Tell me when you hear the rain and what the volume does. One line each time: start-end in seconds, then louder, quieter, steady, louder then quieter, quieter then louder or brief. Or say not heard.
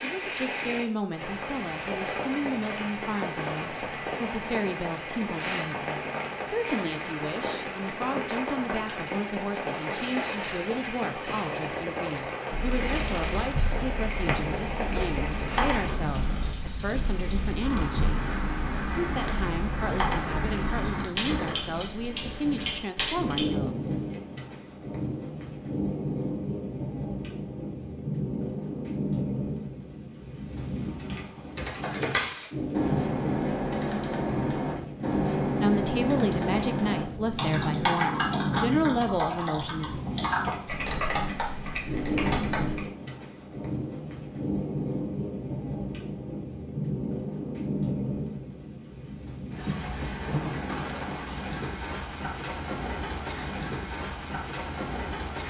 0.0-55.4 steady.